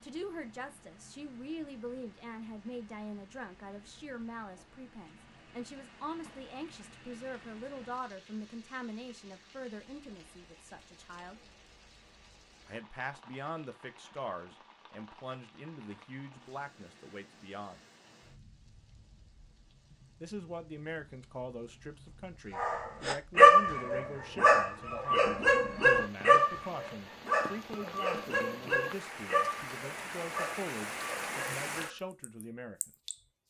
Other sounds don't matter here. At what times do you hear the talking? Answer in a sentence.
You can hear the talking from 0.0 to 11.4 s, from 12.7 to 17.8 s and from 20.2 to 32.9 s.